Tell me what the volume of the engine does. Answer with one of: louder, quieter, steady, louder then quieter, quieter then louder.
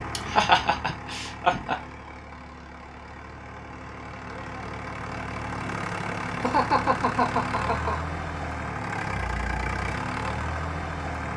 louder.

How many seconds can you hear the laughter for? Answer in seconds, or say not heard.
3 s.